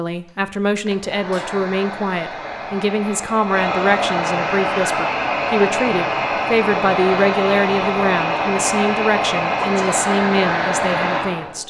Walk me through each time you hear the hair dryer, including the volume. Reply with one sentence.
The hair dryer can be heard from 0.2 to 11.6 s, getting louder.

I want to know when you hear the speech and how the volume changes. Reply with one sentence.
The speech can be heard from 0.0 to 11.6 s, at a steady volume.